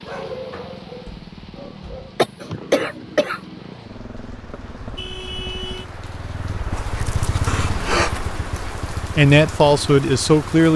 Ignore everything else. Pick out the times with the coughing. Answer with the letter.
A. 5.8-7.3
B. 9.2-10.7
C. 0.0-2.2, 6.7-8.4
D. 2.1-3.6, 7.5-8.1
D.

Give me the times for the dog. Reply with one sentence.
The dog can be heard from 0.0 to 2.2 s and from 6.7 to 8.4 s.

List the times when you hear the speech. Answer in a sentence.
You can hear the speech from 9.2 to 10.7 s.